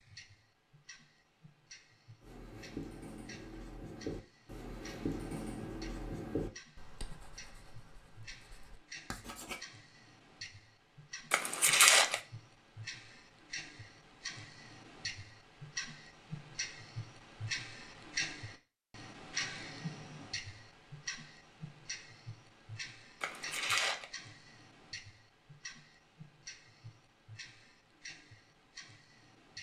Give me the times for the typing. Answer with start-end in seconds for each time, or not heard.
not heard.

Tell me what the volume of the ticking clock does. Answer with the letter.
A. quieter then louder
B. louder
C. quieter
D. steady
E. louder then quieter
E.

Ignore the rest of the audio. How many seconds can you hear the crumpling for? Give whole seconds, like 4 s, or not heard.
2 s.